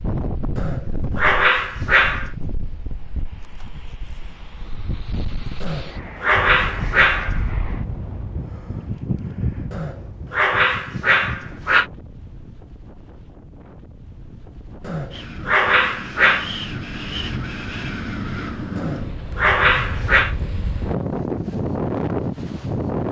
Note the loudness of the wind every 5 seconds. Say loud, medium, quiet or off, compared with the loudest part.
medium, medium, quiet, medium, loud.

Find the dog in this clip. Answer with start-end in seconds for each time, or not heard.
0.6-2.3, 5.6-7.4, 9.7-11.8, 14.8-16.5, 18.8-20.4.